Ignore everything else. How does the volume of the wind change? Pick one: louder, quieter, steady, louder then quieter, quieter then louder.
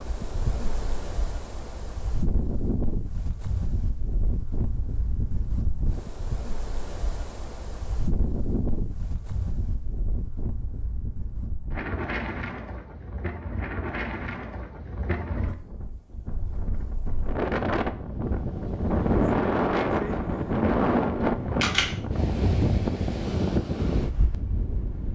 louder.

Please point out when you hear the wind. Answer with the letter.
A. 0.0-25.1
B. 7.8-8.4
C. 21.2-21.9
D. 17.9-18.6
A.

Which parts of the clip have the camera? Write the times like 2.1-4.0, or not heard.
21.2-21.9.